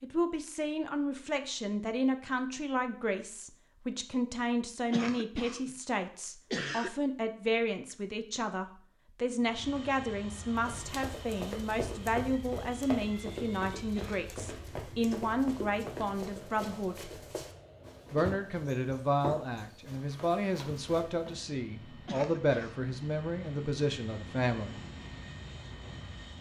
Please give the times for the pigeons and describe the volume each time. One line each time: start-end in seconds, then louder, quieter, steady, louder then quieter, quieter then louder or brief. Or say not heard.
not heard.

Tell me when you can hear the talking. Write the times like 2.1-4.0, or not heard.
0.0-17.1, 18.1-24.8.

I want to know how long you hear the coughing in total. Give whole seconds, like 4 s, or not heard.
3 s.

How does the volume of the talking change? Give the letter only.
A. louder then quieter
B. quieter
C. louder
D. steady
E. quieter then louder
D.